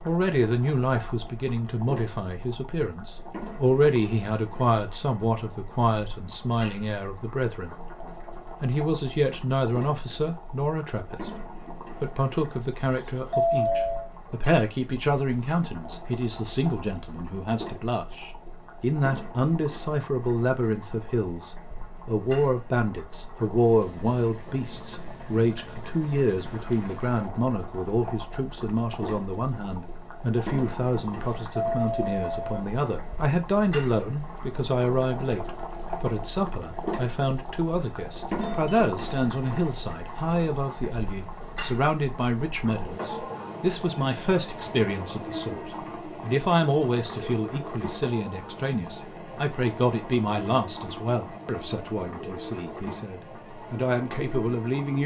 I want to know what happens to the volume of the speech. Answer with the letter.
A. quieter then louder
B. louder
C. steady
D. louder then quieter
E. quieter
C.